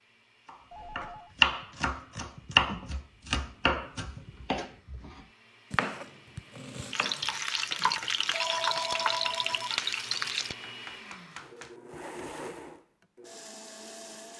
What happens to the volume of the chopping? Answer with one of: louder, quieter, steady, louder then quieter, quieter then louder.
quieter.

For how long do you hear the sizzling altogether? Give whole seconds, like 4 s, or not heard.
4 s.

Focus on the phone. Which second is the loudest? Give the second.
9 s.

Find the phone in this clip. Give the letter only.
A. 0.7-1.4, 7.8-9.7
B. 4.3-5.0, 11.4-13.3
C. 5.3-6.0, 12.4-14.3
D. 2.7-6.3
A.